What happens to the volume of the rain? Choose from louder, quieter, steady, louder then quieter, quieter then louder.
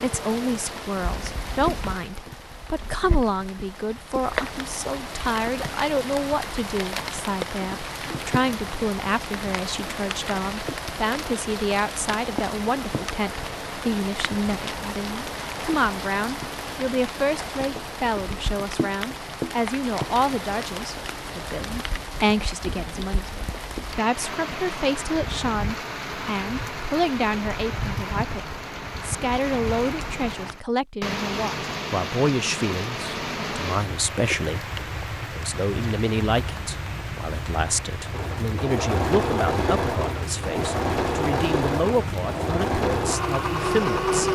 steady.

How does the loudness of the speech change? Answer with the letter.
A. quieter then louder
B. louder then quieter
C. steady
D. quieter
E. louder
C.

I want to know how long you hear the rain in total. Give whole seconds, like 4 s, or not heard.
44 s.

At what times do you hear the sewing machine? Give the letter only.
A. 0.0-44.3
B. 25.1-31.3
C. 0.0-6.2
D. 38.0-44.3
D.